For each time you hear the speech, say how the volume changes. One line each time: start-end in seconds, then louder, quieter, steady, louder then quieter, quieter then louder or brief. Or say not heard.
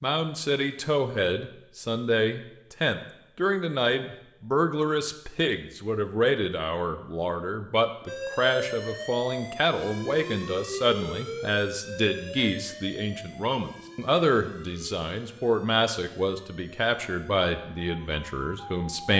0.0-19.1 steady.